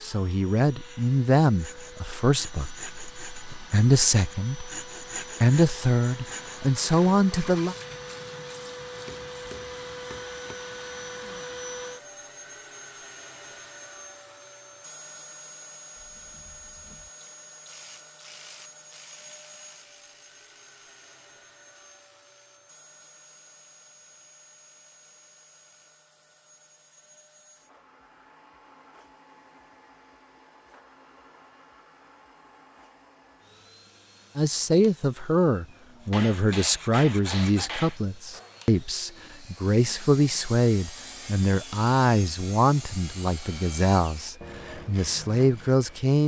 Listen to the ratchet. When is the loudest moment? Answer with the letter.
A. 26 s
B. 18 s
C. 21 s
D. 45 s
B.